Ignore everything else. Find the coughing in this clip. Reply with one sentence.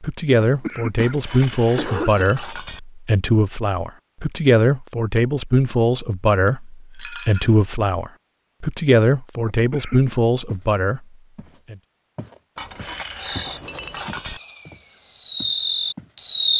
The coughing can be heard from 0.4 to 2.3 s and from 9.4 to 10.2 s.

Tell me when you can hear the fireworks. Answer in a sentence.
You can hear the fireworks from 13.2 to 16.5 s.